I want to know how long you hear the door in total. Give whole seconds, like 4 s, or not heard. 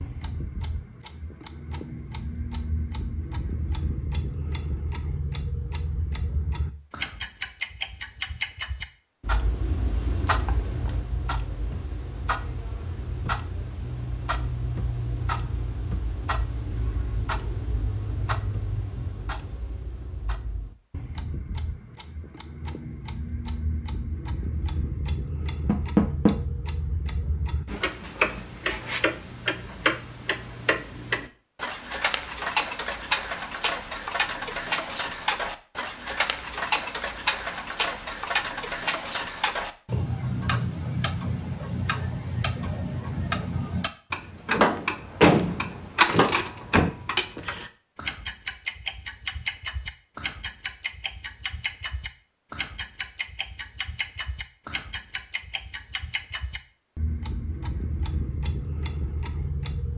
3 s.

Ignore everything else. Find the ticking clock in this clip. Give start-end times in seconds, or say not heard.
0.0-59.9.